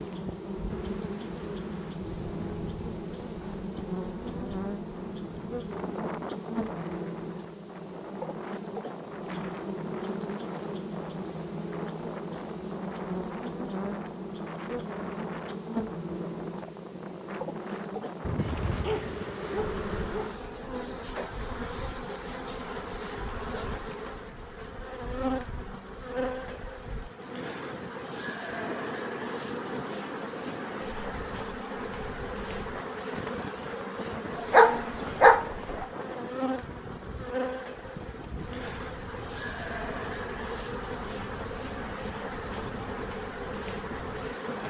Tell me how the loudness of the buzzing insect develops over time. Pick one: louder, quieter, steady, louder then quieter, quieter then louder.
steady.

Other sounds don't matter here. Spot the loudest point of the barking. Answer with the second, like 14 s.
35 s.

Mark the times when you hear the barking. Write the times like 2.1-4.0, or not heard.
18.2-20.3, 34.4-35.9.